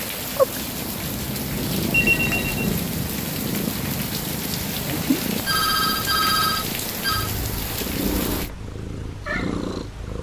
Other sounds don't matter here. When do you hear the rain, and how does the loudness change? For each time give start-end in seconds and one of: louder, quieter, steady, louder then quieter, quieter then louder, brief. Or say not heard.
0.0-8.5 steady.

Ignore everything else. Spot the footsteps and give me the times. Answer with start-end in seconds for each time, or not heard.
not heard.